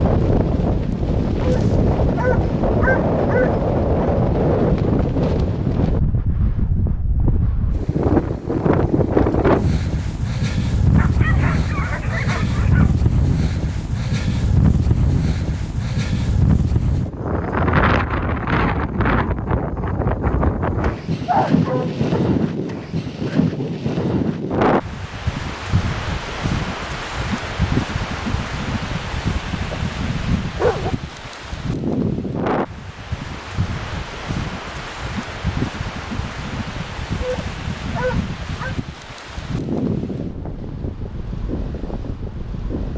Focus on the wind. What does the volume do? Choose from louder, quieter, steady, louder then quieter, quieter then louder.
quieter.